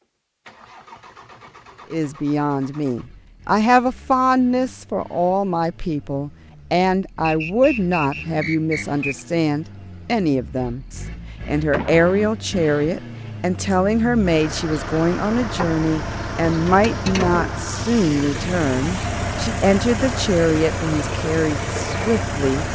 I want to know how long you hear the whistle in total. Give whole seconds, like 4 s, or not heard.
2 s.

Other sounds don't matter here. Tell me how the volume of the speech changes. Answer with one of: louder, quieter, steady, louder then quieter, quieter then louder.
steady.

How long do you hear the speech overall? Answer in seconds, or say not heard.
21 s.